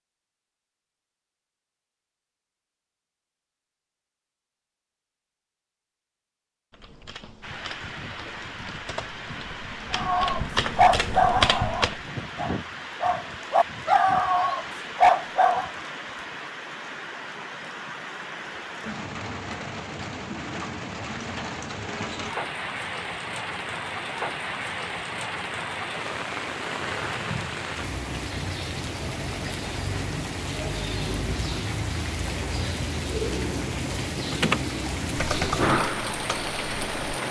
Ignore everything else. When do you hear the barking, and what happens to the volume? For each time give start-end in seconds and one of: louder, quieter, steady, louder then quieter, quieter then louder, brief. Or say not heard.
9.9-15.7 quieter then louder.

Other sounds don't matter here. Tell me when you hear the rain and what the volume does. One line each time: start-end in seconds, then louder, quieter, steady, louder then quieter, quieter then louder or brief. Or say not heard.
7.4-37.2 louder.